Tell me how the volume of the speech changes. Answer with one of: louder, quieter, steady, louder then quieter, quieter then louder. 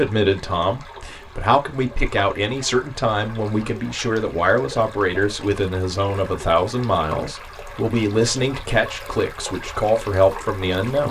steady.